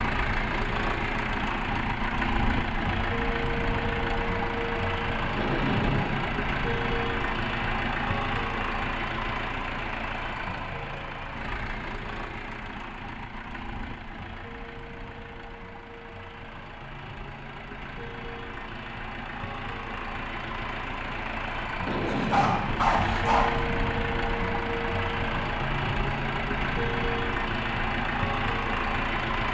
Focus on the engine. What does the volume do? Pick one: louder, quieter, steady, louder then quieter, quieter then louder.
quieter then louder.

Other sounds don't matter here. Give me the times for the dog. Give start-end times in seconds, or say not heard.
22.1-23.6.